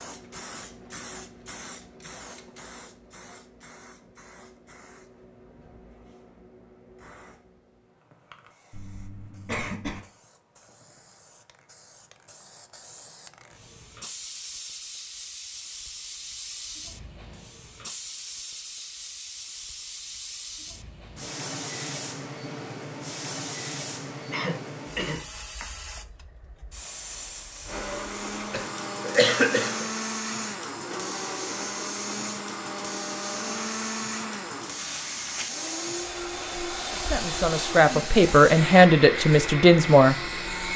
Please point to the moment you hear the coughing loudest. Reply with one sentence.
The loudest moment of the coughing is at 29 seconds.